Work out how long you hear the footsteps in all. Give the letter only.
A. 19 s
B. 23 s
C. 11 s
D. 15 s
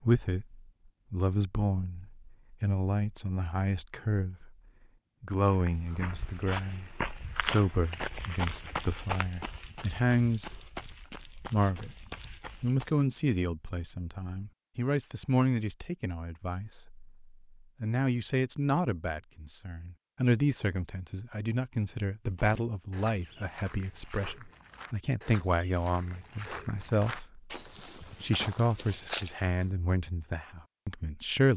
D.